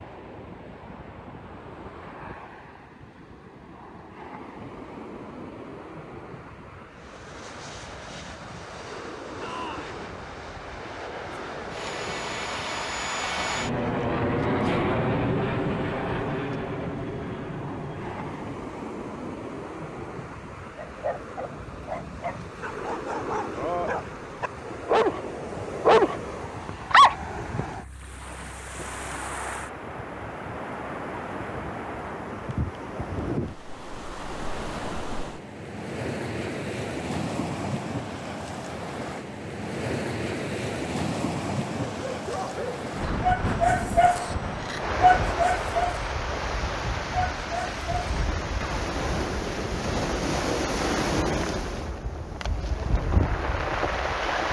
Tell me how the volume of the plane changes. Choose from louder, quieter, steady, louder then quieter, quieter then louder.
louder then quieter.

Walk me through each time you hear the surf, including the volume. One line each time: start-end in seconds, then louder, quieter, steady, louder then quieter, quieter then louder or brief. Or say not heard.
0.0-54.4 louder.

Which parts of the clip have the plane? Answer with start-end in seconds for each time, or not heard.
6.9-18.6.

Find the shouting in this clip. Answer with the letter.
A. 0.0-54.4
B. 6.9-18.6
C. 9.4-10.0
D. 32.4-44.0
C.